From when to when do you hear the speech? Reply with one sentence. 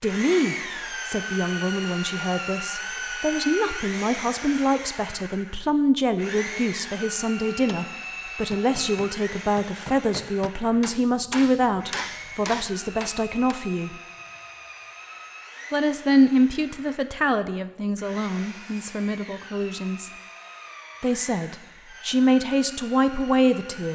The speech can be heard from 0.0 to 13.9 s, from 15.7 to 20.1 s and from 21.0 to 23.9 s.